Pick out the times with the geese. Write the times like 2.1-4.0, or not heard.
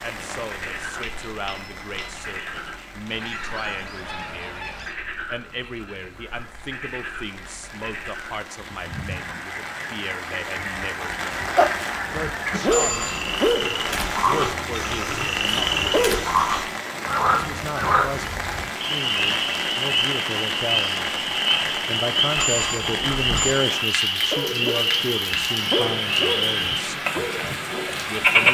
3.0-5.0.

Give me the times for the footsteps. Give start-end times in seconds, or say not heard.
not heard.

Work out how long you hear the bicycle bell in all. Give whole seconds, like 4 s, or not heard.
3 s.